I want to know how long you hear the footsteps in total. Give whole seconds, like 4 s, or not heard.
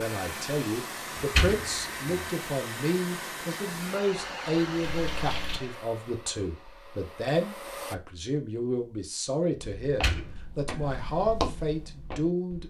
3 s.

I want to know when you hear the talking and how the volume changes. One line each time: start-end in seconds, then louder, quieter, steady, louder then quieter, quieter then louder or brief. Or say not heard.
0.0-12.6 steady.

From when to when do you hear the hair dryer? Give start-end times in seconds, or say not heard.
0.0-8.0.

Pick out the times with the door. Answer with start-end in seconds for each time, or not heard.
1.1-2.2, 9.8-10.9.